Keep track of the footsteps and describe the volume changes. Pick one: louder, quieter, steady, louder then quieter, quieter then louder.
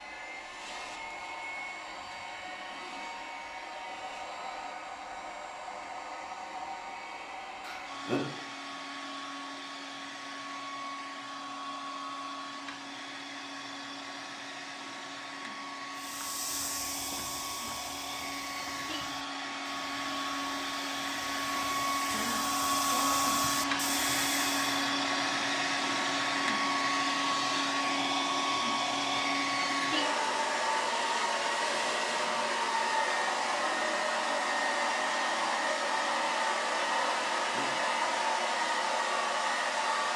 quieter then louder.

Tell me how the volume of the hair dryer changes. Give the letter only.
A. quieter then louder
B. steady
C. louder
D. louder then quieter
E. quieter
C.